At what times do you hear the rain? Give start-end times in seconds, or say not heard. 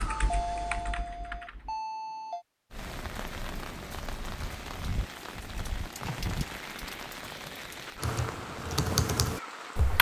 2.7-9.9.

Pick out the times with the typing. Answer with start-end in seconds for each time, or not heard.
0.0-1.8, 8.0-9.9.